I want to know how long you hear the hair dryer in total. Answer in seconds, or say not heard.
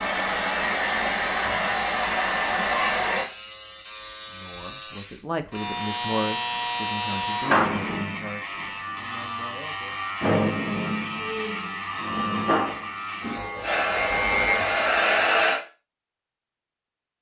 5 s.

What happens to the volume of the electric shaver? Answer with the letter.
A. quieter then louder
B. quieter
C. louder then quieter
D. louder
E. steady
D.